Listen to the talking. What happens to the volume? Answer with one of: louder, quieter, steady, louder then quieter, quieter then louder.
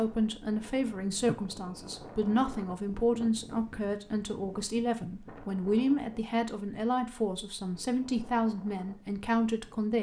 steady.